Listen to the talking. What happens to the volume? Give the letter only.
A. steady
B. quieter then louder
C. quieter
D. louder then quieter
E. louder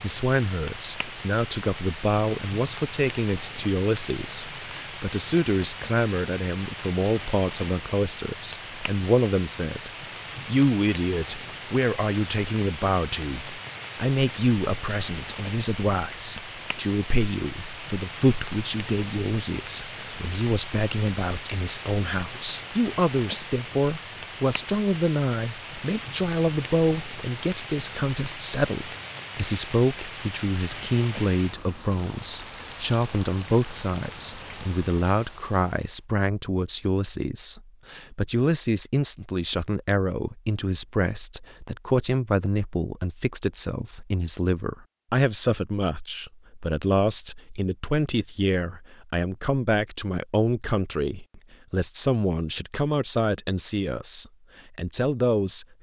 A.